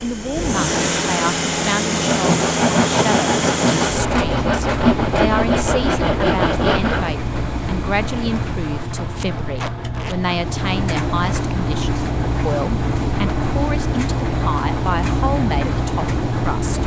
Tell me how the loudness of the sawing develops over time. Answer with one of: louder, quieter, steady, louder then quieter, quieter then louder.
louder.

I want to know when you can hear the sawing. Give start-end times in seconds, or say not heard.
0.6-7.1.